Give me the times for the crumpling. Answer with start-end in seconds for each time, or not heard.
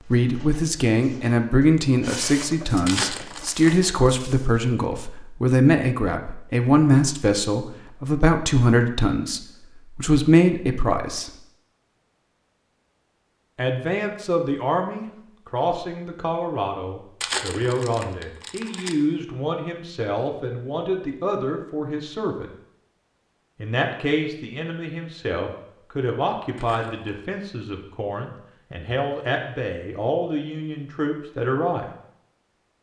2.9-3.7, 17.2-18.9, 26.6-27.2.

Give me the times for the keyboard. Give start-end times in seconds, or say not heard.
not heard.